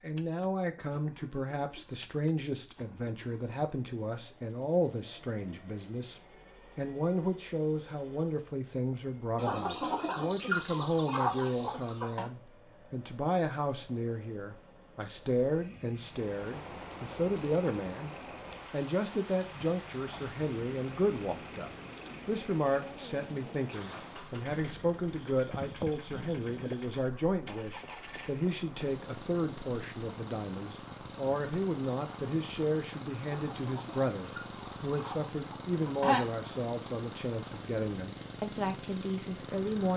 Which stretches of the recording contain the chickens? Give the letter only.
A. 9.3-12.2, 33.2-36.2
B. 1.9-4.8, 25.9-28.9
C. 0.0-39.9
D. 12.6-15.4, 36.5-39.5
A.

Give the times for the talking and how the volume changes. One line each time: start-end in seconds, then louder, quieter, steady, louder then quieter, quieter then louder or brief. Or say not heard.
0.0-39.9 steady.